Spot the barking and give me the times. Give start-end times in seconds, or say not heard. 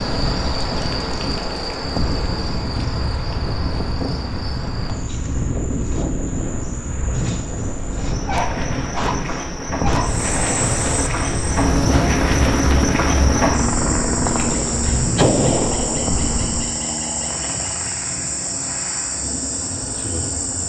8.2-10.2.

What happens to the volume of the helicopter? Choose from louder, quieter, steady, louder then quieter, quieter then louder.
quieter.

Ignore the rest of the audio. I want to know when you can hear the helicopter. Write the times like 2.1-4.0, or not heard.
10.0-20.6.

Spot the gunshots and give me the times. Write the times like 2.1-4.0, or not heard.
14.4-16.1.